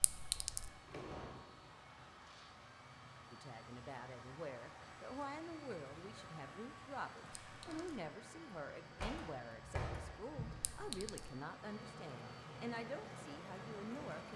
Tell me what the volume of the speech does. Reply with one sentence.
The volume of the speech stays about the same.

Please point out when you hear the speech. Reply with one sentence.
You can hear the speech from 3.3 to 14.3 s.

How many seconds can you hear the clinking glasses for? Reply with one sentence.
You can hear the clinking glasses for 2 seconds altogether.